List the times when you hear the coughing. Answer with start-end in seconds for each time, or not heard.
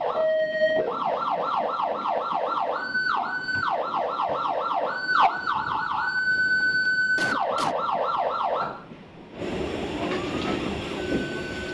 6.8-7.8.